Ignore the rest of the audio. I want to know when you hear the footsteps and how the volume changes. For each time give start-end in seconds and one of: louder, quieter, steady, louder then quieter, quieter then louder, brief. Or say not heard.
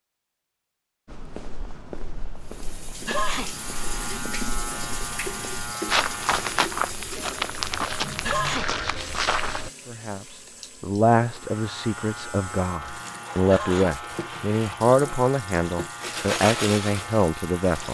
1.1-9.7 louder.